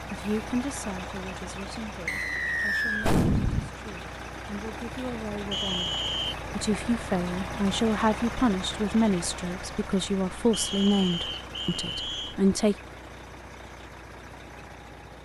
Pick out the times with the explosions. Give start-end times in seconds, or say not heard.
3.0-3.7.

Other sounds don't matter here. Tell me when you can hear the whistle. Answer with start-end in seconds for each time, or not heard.
2.0-3.1, 5.5-6.3, 10.5-12.3.